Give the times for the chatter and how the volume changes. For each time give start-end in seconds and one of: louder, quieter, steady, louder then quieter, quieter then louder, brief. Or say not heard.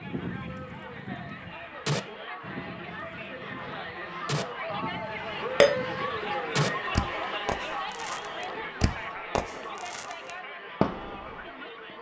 0.0-11.9 louder then quieter.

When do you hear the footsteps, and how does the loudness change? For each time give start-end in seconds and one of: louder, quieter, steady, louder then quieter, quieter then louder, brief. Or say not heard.
not heard.